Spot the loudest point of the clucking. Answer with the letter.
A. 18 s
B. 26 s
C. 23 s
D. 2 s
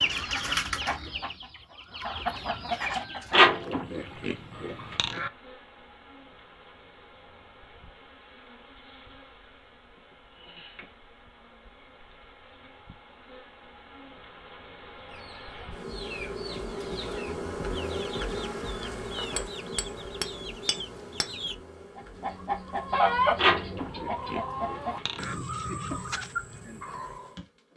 C.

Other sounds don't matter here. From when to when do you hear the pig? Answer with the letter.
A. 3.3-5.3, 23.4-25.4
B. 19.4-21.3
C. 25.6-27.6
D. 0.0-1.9
A.